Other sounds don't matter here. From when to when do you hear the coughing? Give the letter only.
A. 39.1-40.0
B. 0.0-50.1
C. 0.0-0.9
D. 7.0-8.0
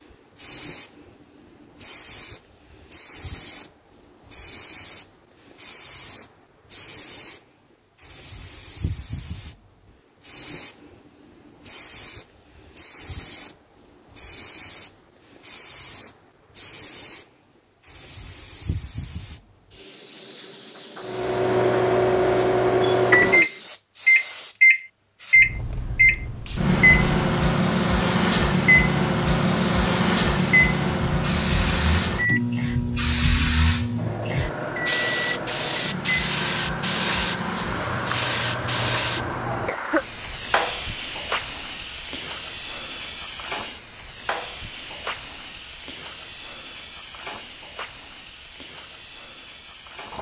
A.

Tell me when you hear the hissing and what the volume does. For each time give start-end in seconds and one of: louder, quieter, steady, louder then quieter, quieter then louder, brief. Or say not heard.
0.0-50.1 louder then quieter.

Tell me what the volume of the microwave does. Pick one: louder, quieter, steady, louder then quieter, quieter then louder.
quieter.